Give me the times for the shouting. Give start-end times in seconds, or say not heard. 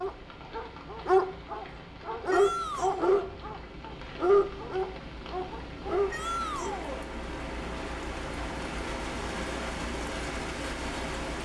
2.3-3.2, 6.1-7.0.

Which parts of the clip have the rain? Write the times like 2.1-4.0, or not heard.
0.0-11.4.